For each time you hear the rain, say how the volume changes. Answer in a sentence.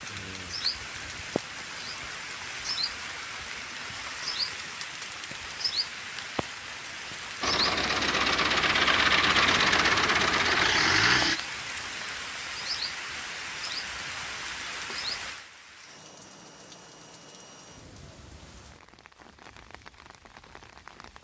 You can hear the rain from 0.0 to 21.2 s, getting quieter.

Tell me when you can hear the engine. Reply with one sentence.
The engine can be heard from 7.4 to 11.4 s.